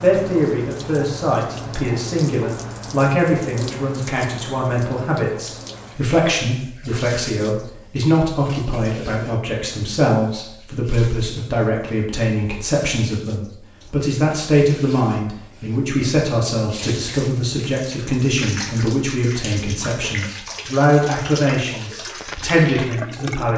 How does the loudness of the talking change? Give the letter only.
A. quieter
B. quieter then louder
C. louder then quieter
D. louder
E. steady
E.